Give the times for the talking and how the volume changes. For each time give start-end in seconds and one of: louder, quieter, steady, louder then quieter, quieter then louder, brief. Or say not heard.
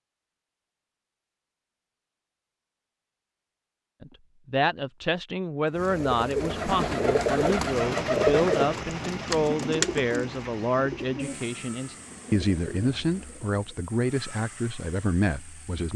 4.0-15.9 steady.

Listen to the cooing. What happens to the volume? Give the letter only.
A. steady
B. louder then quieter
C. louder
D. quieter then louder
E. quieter
E.